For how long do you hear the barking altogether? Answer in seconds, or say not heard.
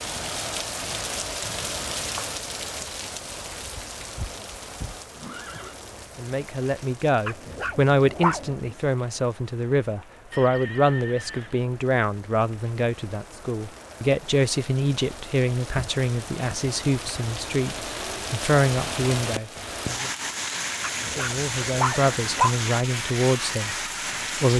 3 s.